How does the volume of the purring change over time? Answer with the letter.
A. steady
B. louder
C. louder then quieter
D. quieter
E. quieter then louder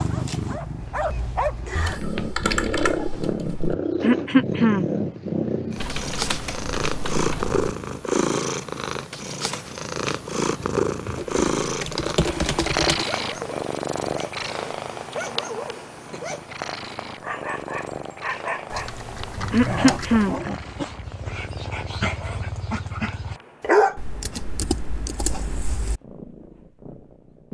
D.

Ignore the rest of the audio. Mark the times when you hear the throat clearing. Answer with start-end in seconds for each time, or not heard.
4.0-4.8, 19.5-20.4.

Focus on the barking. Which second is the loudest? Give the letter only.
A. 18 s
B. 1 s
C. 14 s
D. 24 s
D.